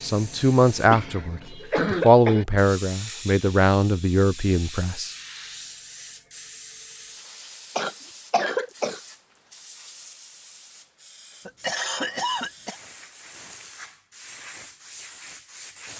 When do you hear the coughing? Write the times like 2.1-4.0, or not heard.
0.9-2.5, 7.8-9.0, 11.4-12.8.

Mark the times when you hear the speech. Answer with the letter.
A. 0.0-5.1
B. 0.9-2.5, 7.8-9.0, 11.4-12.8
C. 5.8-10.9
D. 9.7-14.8
A.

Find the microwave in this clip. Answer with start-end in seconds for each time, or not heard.
not heard.